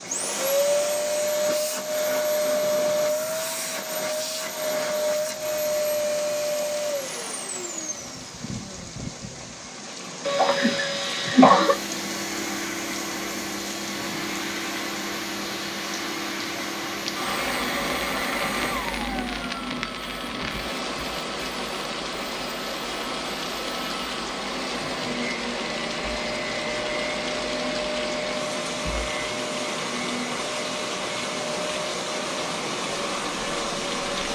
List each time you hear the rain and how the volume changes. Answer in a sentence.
You can hear the rain from 0.0 to 34.3 s, getting louder.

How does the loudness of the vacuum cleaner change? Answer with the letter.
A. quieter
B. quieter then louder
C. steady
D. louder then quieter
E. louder
A.